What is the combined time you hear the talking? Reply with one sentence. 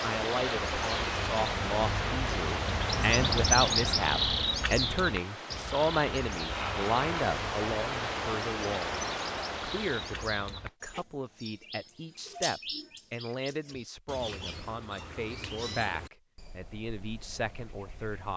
You can hear the talking for 18 seconds altogether.